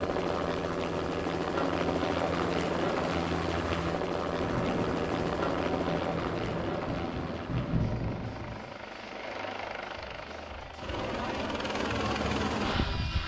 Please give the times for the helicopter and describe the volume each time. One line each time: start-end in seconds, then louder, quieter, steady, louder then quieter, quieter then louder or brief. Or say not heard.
0.0-13.2 quieter then louder.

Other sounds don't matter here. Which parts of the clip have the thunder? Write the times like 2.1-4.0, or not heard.
4.4-8.8.